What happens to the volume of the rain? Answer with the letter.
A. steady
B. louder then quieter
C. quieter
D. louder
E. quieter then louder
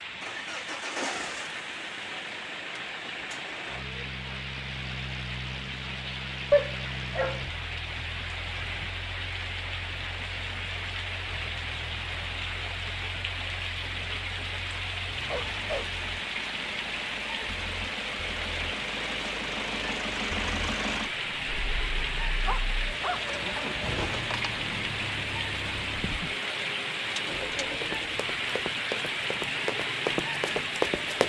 D.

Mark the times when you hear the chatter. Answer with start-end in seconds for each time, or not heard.
not heard.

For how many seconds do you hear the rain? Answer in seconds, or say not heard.
31 s.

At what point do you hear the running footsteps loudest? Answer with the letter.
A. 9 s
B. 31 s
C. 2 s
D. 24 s
B.